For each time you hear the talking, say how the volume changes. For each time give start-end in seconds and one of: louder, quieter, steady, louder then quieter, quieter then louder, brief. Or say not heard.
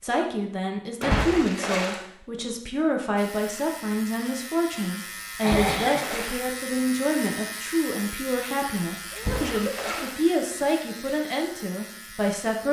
0.0-12.6 steady.